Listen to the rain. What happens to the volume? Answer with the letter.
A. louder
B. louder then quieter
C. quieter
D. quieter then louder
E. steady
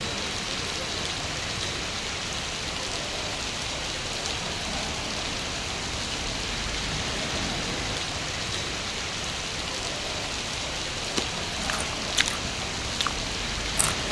E.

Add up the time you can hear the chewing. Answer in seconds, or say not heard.
3 s.